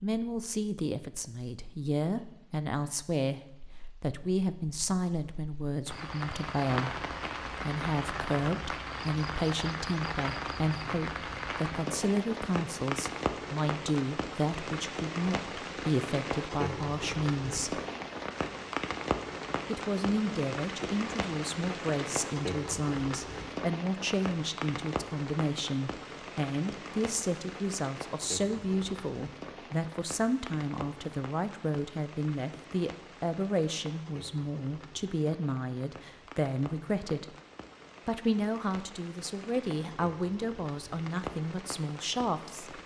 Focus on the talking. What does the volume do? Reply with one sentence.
The volume of the talking stays about the same.